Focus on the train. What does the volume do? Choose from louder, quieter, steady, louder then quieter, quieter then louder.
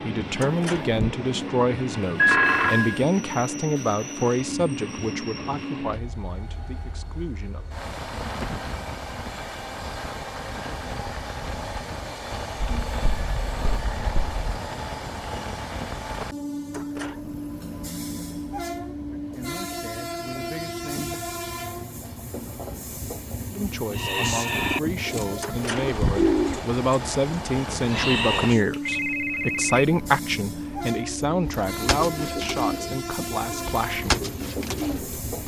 steady.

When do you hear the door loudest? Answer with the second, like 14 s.
26 s.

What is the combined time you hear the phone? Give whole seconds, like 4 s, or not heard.
5 s.